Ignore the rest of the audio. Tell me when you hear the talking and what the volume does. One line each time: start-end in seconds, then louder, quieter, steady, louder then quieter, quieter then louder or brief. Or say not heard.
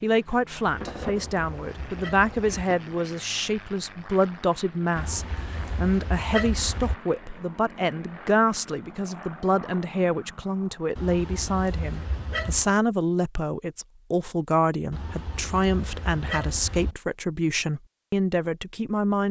0.0-19.2 steady.